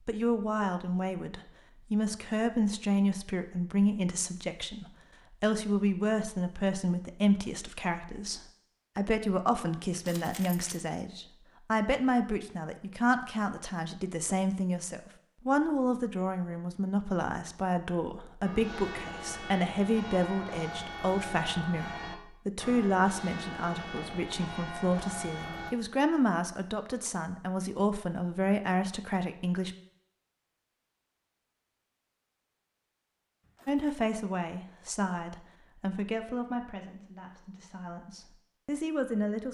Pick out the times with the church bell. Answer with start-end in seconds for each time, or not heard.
18.4-25.8.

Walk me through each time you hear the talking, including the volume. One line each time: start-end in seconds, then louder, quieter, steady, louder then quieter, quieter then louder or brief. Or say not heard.
0.1-29.8 steady
33.6-39.5 quieter then louder.